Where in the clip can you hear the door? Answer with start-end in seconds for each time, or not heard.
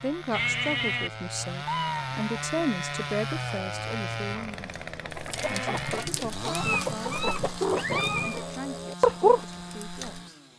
not heard.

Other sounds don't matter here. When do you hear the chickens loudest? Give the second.
9 s.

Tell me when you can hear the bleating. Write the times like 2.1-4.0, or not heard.
0.3-1.1, 5.3-6.1.